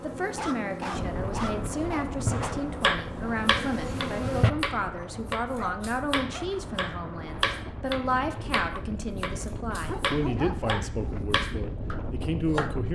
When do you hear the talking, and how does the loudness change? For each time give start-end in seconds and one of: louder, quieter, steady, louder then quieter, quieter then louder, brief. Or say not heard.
0.0-12.8 steady.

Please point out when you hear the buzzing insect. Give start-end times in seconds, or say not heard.
0.0-4.5.